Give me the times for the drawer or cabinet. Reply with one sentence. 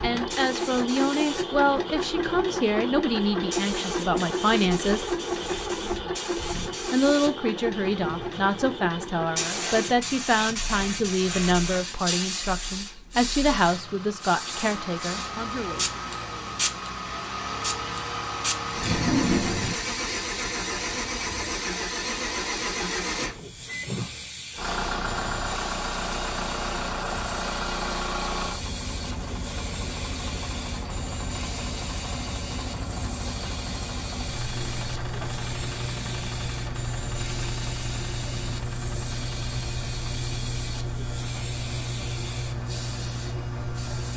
The drawer or cabinet can be heard from 18.8 to 19.8 s.